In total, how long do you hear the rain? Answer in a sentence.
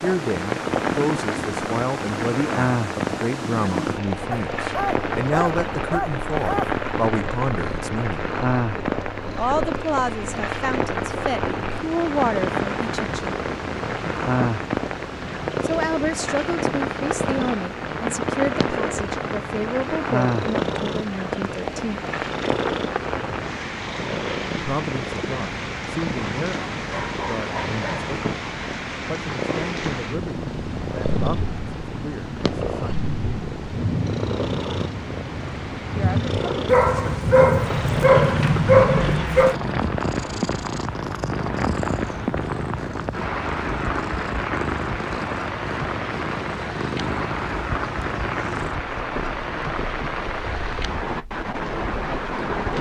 You can hear the rain for 53 seconds altogether.